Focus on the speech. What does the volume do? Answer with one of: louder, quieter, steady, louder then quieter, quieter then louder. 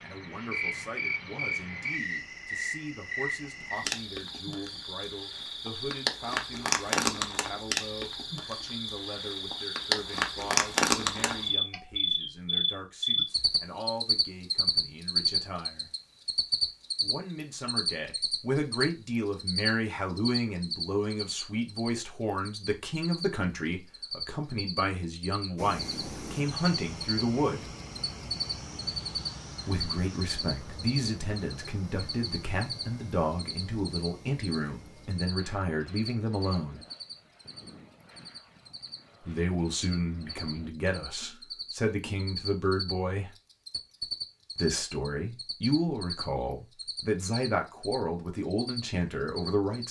louder.